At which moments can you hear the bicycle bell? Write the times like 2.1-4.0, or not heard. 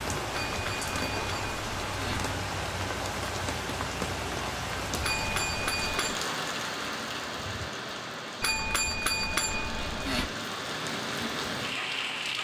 0.3-2.4, 5.0-6.2, 8.4-10.3.